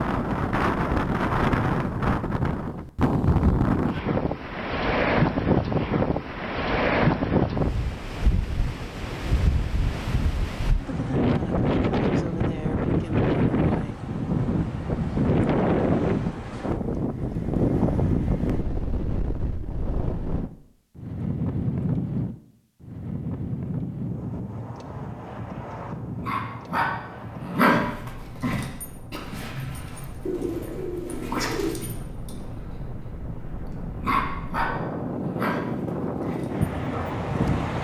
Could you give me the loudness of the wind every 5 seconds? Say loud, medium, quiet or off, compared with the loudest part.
loud, loud, loud, loud, medium, quiet, quiet, loud.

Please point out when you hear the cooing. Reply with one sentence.
The cooing can be heard from 30.2 to 31.8 s.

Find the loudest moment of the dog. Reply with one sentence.
The volume of the dog peaks at 28 seconds.